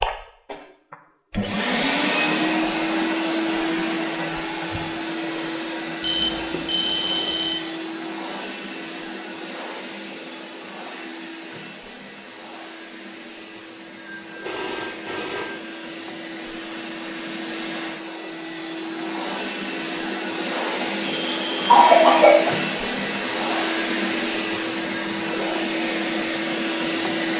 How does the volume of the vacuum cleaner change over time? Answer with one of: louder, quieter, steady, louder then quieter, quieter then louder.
quieter then louder.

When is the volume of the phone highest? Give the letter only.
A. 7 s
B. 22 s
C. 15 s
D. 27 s
A.